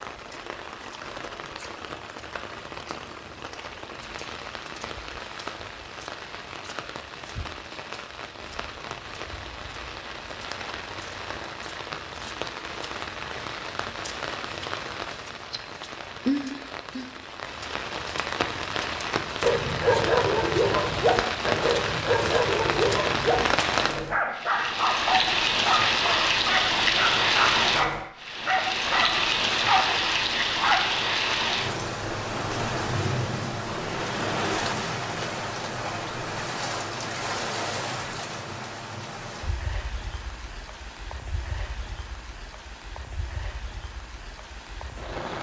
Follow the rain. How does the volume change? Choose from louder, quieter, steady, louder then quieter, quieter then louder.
louder then quieter.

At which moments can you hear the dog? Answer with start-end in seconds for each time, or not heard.
19.4-30.9.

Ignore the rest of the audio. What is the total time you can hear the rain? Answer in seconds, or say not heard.
45 s.